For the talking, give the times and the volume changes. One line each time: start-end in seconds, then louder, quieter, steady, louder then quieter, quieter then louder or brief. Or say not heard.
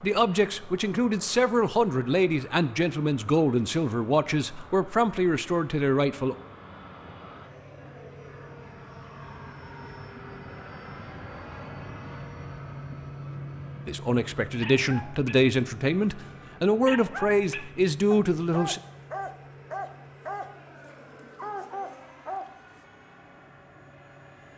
0.0-6.3 steady
13.8-18.8 steady.